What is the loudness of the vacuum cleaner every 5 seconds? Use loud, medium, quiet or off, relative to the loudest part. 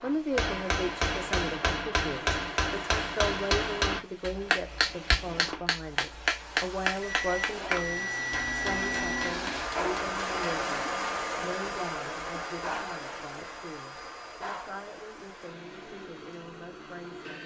medium, loud, loud, medium.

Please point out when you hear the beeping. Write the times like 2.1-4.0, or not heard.
7.0-9.3.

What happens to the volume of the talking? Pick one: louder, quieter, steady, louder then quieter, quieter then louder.
quieter.